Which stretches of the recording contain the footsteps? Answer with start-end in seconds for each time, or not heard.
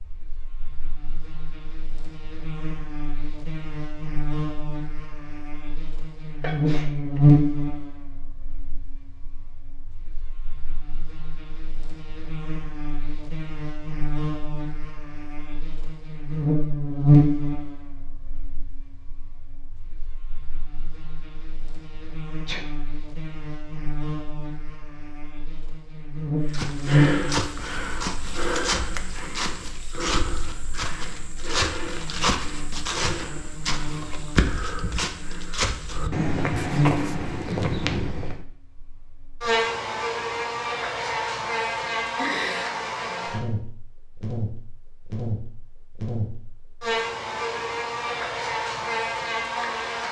26.4-38.4.